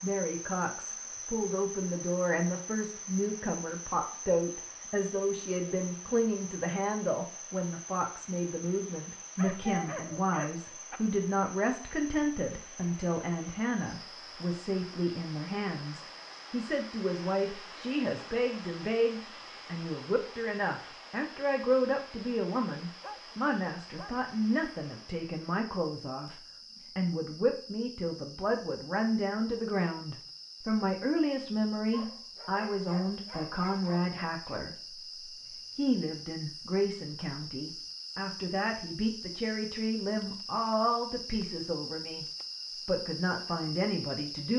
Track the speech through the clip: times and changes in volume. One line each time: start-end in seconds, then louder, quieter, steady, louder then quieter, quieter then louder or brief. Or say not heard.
0.0-42.2 steady
42.9-44.5 brief.